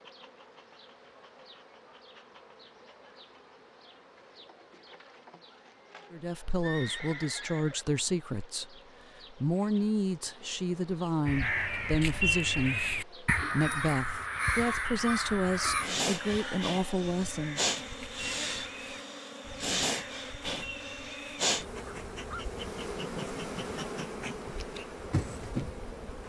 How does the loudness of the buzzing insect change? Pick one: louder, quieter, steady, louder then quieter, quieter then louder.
louder.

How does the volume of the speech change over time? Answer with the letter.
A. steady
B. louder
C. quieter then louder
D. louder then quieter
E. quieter
A.